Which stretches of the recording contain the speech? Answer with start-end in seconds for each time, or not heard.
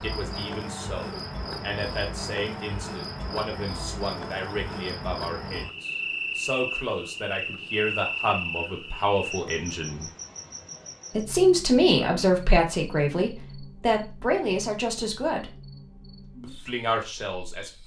0.0-10.1, 11.2-15.6, 16.4-17.8.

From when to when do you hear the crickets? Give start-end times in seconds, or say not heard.
0.0-17.8.